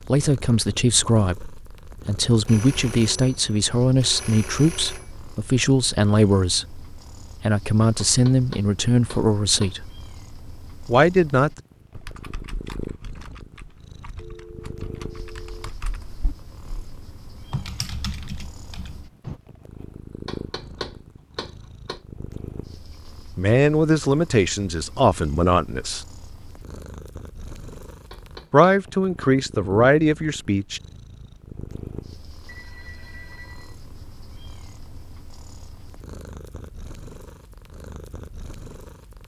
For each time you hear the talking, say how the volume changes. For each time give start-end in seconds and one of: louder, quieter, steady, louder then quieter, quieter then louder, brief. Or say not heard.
0.1-9.9 steady
10.8-11.6 brief
23.4-26.0 brief
28.5-30.8 brief.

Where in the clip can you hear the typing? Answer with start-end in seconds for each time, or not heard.
11.9-19.4.